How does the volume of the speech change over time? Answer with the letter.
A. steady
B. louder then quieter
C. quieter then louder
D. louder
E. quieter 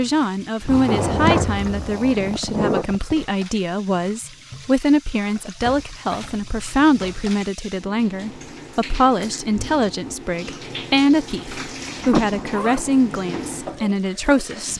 A.